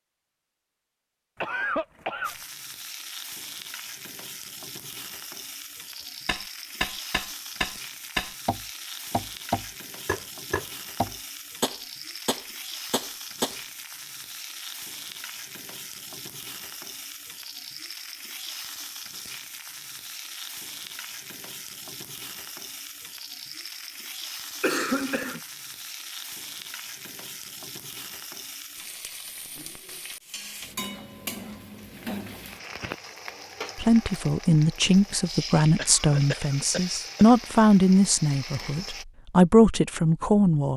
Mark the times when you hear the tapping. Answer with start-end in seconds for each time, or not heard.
6.2-13.6.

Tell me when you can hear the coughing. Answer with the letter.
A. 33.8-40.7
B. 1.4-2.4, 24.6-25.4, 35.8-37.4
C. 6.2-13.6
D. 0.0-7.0
B.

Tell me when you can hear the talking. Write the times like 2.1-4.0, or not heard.
33.8-40.7.